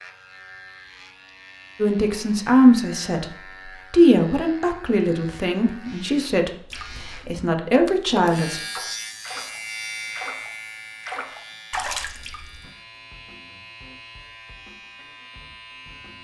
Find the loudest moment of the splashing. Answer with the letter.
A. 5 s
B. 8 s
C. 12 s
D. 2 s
C.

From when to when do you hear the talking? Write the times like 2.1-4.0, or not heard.
1.8-3.2, 3.9-8.6.